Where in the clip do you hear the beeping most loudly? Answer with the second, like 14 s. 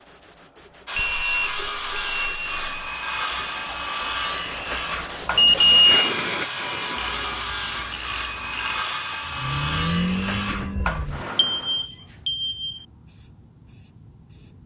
6 s.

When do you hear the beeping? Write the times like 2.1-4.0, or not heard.
0.9-2.7, 5.3-6.0, 11.3-12.8.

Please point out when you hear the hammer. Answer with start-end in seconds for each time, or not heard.
not heard.